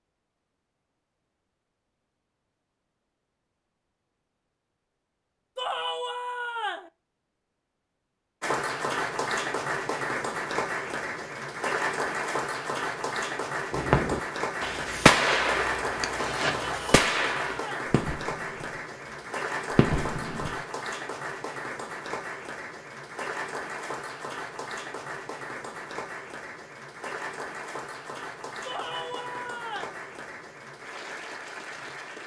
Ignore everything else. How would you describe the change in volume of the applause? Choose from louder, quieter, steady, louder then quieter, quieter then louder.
quieter.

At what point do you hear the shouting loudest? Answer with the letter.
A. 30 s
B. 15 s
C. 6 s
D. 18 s
C.